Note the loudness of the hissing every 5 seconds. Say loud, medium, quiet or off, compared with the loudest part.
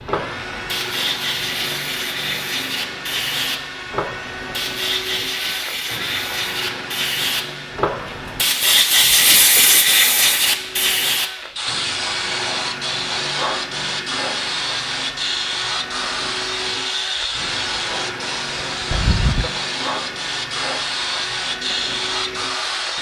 medium, loud, loud, medium, medium.